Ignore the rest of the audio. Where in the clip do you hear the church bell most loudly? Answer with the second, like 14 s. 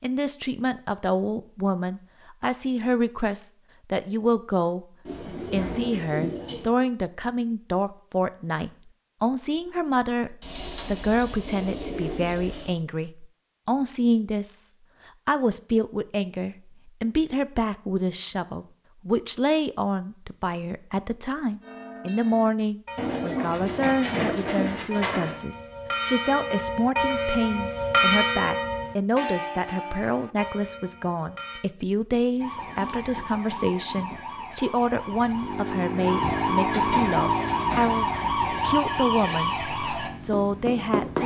28 s.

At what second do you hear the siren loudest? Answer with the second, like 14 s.
37 s.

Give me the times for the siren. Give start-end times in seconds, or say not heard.
32.4-41.2.